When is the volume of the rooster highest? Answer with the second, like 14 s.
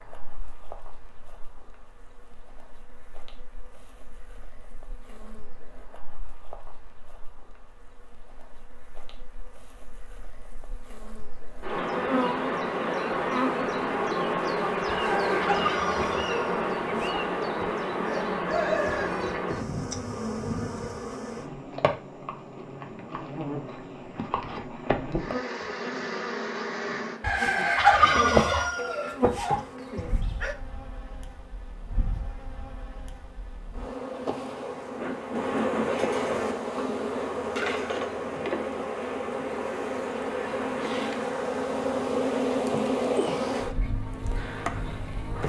28 s.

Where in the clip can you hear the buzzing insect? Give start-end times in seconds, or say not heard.
0.0-45.4.